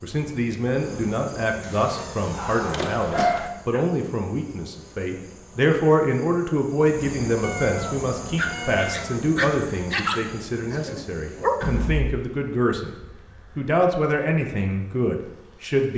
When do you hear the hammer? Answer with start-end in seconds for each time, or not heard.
not heard.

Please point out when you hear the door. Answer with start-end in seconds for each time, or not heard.
1.6-2.8, 11.6-12.1.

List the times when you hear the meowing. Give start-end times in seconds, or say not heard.
7.4-9.2.